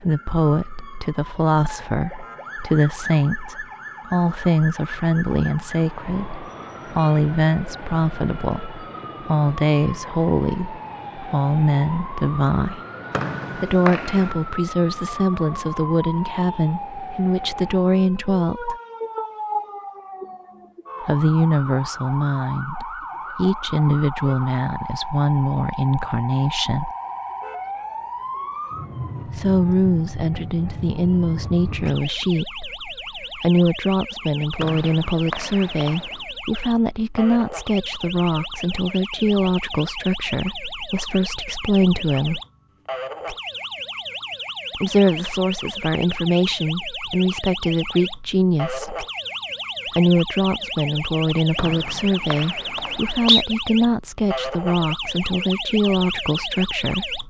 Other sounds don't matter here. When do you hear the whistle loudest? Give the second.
53 s.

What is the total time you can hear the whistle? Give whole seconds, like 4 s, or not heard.
5 s.